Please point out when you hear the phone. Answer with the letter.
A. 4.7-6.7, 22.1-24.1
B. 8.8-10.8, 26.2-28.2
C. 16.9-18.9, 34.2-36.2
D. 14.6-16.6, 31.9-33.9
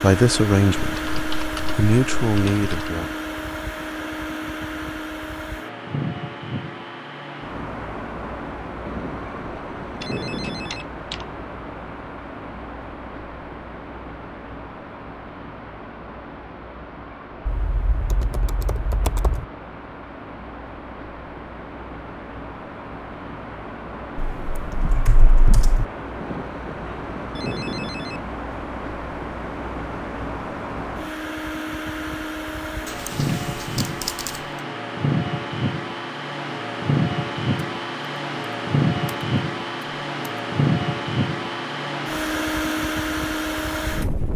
B.